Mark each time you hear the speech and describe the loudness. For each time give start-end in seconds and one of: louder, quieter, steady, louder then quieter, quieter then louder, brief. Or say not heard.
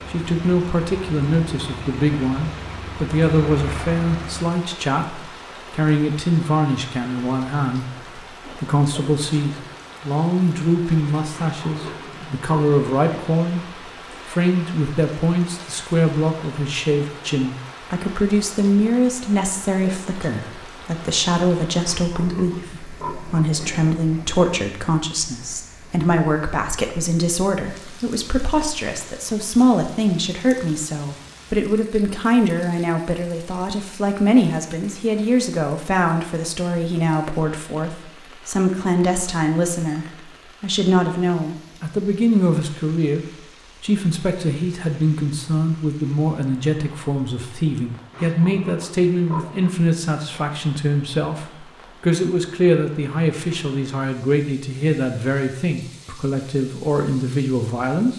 0.1-13.6 steady
14.2-58.1 steady.